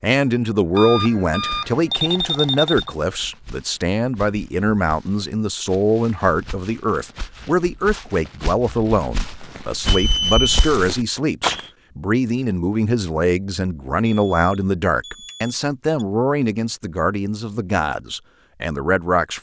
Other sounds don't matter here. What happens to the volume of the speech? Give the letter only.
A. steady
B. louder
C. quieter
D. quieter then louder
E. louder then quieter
A.